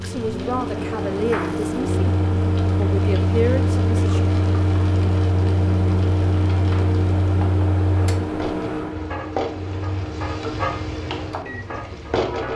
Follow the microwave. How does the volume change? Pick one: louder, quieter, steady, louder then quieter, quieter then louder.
quieter.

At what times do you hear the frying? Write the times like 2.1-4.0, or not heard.
0.0-12.5.